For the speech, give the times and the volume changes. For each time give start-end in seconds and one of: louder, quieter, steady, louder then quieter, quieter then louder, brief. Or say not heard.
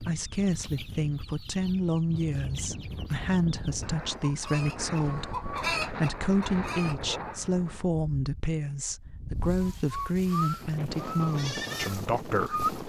0.0-12.8 steady.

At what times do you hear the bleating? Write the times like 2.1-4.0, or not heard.
9.5-12.8.